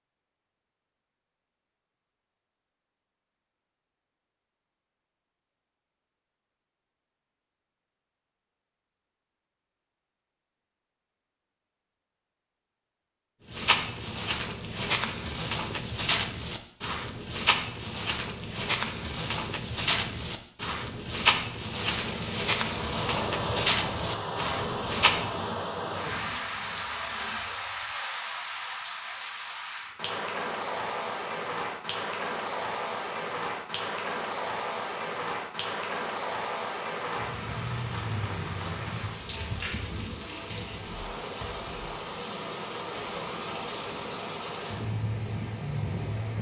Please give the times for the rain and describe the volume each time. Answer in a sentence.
You can hear the rain from 21.8 to 46.3 s, at a steady volume.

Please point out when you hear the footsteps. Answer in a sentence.
The footsteps can be heard from 13.4 to 25.4 s.